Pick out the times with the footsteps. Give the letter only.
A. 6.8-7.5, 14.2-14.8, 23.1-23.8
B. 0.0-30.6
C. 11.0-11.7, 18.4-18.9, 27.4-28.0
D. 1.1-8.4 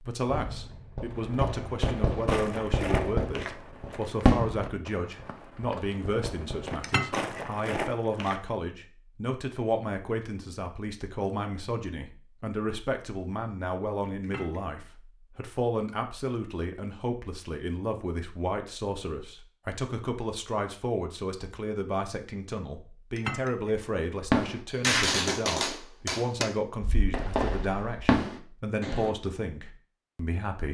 D.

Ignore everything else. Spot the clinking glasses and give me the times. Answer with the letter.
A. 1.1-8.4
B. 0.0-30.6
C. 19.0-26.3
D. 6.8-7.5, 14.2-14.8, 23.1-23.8
D.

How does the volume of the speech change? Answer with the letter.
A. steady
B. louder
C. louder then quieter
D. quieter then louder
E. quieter
A.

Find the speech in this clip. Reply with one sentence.
The speech can be heard from 0.0 to 30.6 s.